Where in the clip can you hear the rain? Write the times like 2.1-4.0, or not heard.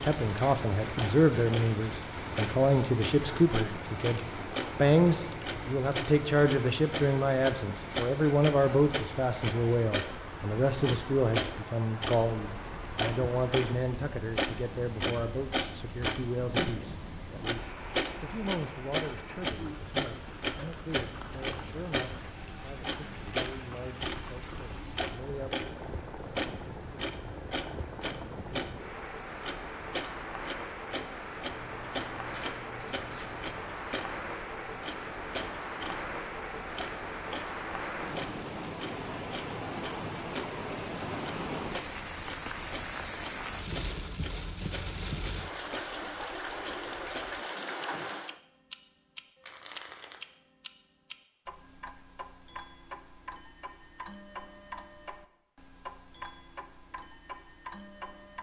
0.0-48.4.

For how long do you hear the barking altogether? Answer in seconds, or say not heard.
not heard.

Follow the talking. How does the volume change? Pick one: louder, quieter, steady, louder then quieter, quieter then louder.
quieter.